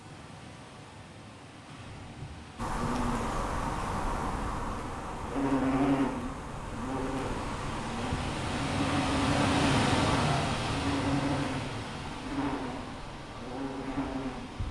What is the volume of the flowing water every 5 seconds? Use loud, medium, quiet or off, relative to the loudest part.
quiet, loud, loud.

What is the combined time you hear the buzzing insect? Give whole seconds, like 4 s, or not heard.
12 s.